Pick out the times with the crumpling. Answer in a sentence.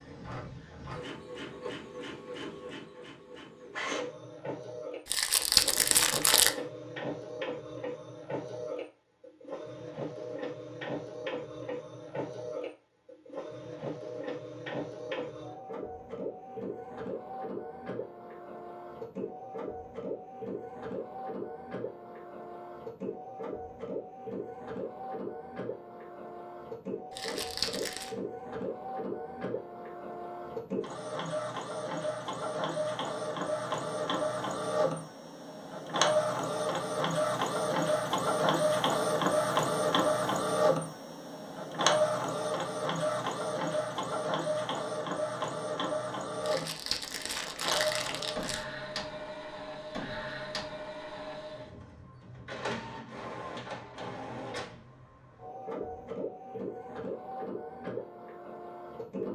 You can hear the crumpling from 5.0 to 6.5 s, from 27.1 to 28.1 s and from 46.4 to 48.6 s.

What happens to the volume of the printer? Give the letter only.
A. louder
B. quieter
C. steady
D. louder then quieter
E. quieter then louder
D.